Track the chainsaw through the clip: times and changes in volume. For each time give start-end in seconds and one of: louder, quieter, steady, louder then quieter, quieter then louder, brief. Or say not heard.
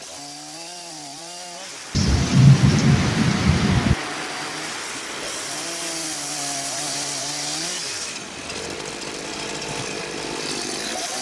0.0-11.1 louder.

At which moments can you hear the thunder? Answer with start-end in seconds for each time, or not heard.
1.9-4.0.